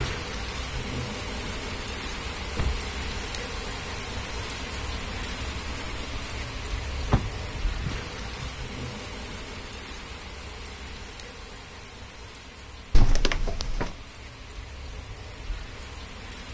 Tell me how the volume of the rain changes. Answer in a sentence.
The loudness of the rain goes down.